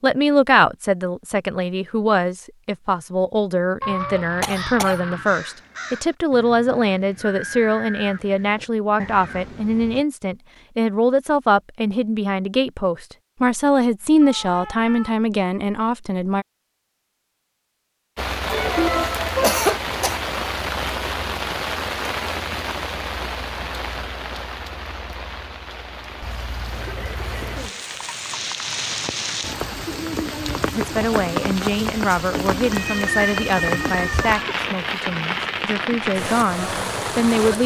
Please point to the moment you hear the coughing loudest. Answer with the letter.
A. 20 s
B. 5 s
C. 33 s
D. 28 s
A.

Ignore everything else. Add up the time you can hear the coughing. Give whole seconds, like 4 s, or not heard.
4 s.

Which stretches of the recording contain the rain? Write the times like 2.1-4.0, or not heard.
18.1-37.6.